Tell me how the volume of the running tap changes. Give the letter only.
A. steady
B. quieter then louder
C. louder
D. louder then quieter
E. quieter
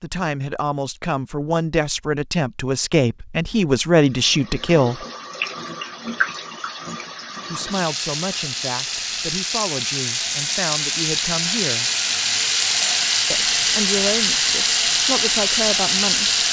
C.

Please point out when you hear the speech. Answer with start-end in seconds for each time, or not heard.
0.0-5.0, 7.5-11.9, 13.3-16.4.